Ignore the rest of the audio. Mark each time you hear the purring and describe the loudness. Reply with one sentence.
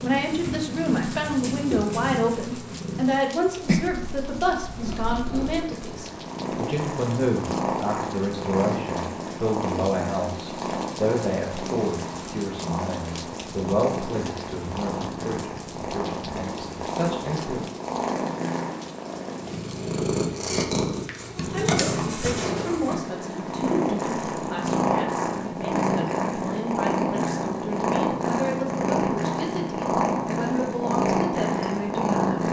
The purring can be heard from 0.0 to 32.4 s, getting louder.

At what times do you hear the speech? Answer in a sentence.
You can hear the speech from 0.0 to 17.6 s and from 21.4 to 32.4 s.